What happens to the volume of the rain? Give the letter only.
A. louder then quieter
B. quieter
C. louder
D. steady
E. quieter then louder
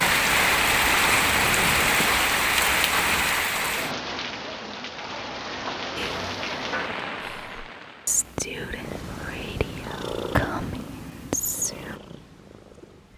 B.